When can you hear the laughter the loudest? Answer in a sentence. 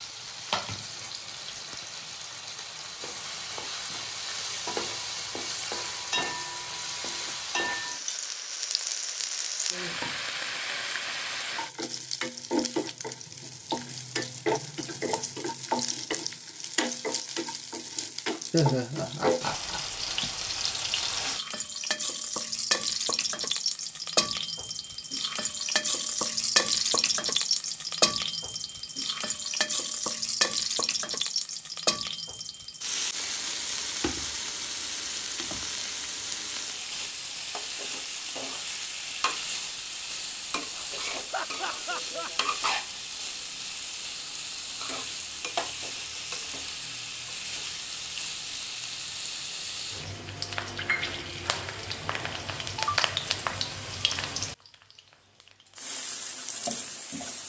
The volume of the laughter peaks at 19 seconds.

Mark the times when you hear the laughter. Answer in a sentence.
The laughter can be heard from 18.5 to 20.3 s and from 41.3 to 42.3 s.